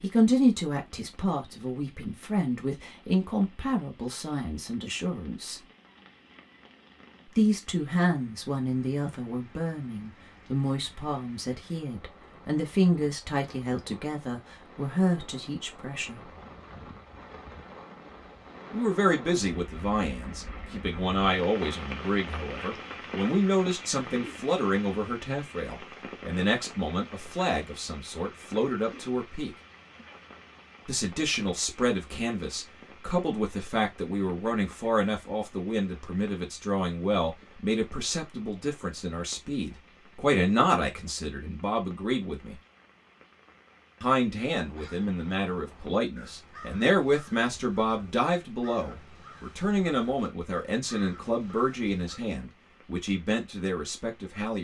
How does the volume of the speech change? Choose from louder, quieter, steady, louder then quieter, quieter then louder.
steady.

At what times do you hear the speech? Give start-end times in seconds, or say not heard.
0.0-5.6, 7.2-16.3, 18.7-29.5, 30.9-42.6, 44.0-54.5.